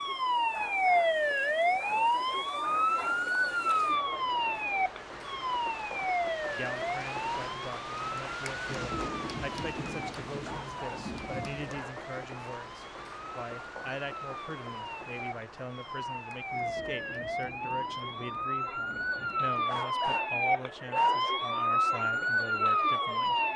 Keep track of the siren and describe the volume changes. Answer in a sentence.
The volume of the siren goes down, then up.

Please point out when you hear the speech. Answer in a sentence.
The speech can be heard from 6.5 to 23.4 s.